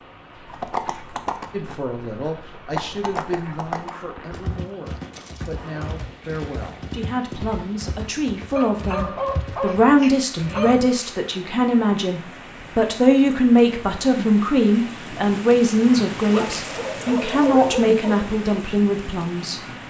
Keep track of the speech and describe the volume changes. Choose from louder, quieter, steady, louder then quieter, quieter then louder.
louder.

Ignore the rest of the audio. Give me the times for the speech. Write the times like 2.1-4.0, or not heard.
1.5-19.6.